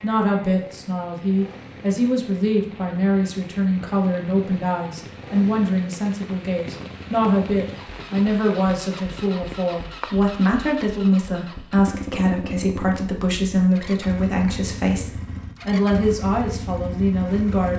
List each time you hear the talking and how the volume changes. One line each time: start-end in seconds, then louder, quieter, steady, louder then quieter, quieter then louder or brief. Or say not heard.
0.0-17.7 steady.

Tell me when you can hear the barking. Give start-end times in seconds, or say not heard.
not heard.